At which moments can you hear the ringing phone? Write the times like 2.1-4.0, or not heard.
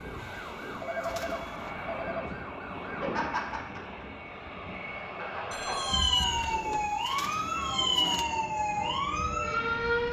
0.8-2.3, 5.5-6.9.